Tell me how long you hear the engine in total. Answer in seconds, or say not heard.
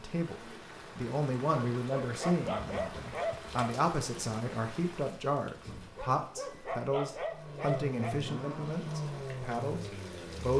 3 s.